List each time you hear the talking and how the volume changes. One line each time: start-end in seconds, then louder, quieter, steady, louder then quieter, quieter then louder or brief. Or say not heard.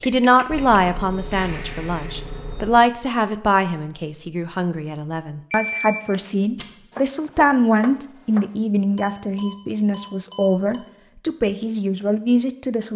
0.0-12.9 steady.